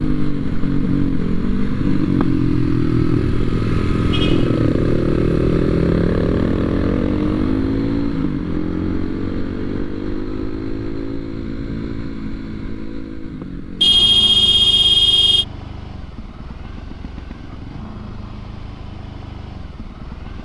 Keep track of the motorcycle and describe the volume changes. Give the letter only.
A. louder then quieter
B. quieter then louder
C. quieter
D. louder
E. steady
C.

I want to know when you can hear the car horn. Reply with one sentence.
You can hear the car horn from 4.1 to 4.5 s and from 13.8 to 15.4 s.